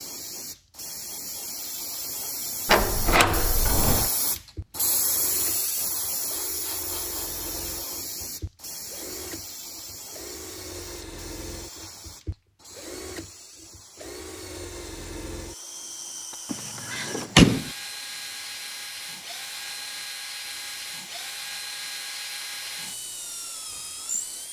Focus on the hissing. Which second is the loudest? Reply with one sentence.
The loudest moment of the hissing is at 5 seconds.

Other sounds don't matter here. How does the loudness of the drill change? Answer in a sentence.
The loudness of the drill goes up.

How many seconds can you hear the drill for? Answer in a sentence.
You can hear the drill for 20 seconds altogether.